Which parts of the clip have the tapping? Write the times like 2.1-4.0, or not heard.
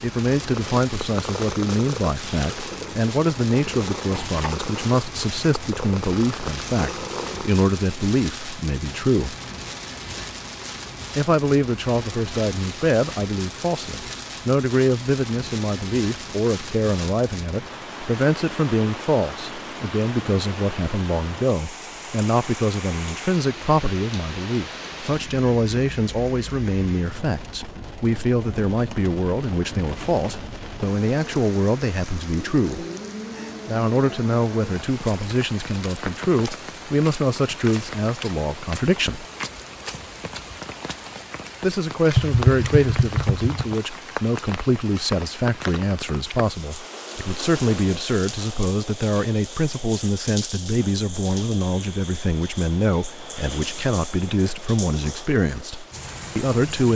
42.1-43.8.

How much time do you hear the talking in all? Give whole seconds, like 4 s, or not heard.
52 s.